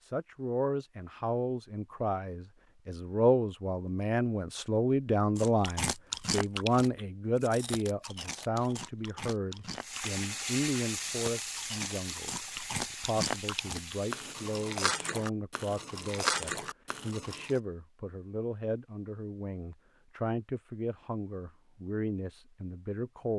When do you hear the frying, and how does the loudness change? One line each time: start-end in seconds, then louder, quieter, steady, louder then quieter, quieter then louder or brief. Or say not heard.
9.8-14.7 quieter.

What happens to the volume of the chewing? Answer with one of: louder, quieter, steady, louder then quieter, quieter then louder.
quieter then louder.